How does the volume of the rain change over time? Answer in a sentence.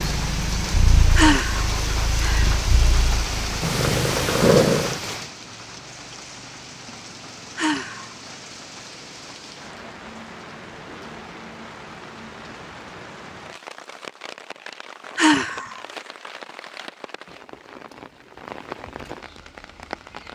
The volume of the rain goes down.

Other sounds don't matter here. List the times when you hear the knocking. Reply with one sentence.
You can't hear the knocking here.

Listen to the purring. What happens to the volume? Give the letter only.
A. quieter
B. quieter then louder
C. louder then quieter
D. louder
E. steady
D.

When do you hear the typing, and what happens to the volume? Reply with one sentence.
The typing can't be heard in this clip.